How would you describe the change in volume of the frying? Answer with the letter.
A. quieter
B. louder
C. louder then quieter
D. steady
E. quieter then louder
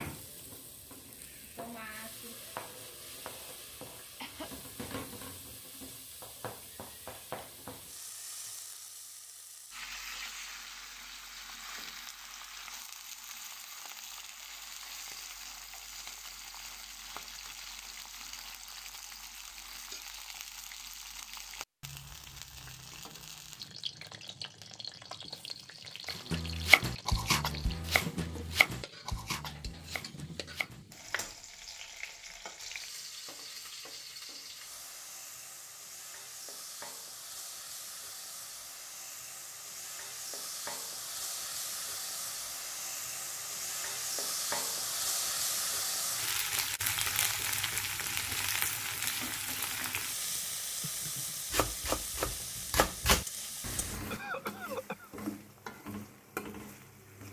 B.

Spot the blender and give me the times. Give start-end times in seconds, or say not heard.
not heard.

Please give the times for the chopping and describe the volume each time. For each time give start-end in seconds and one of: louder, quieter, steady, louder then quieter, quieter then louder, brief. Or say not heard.
26.1-31.4 quieter
51.5-54.1 brief.